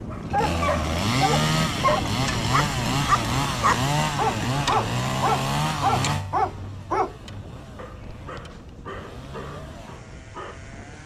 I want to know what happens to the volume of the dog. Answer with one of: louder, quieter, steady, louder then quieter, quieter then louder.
quieter.